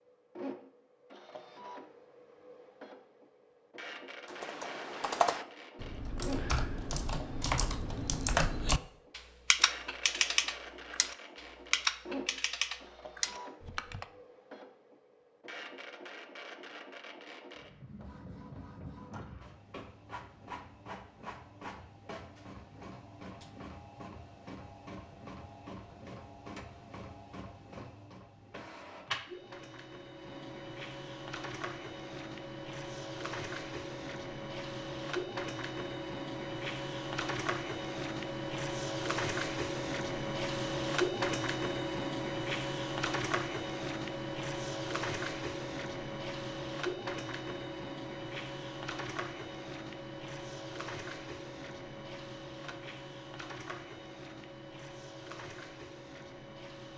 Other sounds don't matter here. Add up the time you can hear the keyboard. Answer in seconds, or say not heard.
10 s.